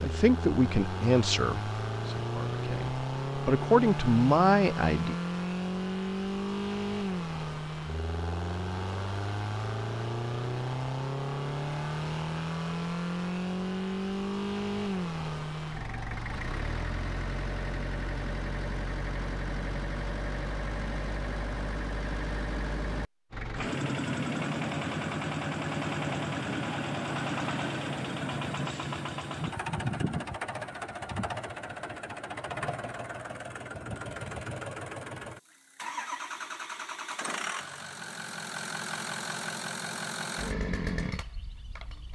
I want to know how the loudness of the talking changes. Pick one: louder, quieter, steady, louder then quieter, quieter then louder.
quieter then louder.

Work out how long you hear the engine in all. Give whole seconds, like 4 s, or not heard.
42 s.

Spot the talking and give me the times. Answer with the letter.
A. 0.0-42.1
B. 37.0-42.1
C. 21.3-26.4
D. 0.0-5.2
D.